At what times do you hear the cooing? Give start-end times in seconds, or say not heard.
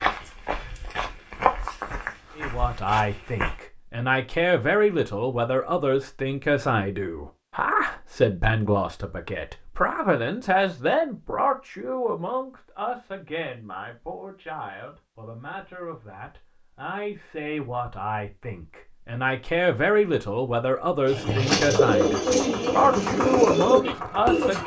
21.1-24.6.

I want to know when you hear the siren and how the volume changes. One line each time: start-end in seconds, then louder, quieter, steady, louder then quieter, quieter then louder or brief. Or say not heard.
not heard.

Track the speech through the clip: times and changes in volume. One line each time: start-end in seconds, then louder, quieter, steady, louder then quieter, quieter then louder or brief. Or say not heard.
2.4-24.6 quieter then louder.